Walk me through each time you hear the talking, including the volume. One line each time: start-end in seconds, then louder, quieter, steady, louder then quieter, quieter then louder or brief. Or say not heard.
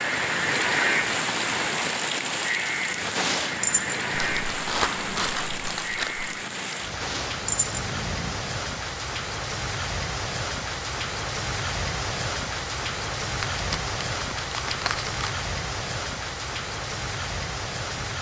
not heard.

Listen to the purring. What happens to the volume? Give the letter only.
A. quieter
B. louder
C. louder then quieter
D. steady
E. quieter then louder
E.